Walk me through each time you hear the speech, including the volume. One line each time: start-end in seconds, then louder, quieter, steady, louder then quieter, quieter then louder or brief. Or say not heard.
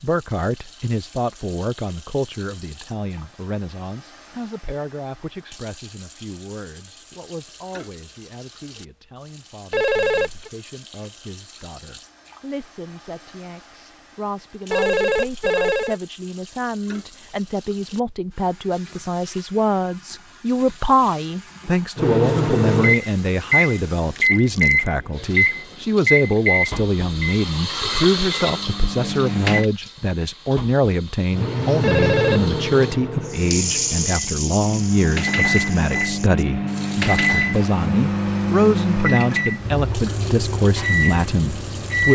0.0-42.0 louder.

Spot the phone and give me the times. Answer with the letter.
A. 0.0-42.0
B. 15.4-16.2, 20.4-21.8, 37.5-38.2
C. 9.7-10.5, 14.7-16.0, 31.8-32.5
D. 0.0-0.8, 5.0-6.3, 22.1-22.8
C.